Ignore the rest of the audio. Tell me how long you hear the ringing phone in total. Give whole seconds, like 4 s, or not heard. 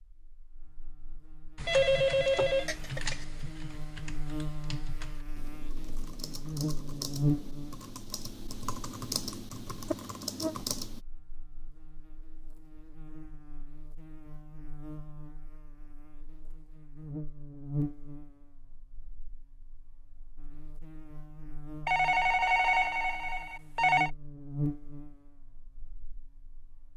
4 s.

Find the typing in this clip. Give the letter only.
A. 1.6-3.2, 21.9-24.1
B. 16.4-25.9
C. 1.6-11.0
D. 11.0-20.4
C.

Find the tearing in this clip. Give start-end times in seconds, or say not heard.
not heard.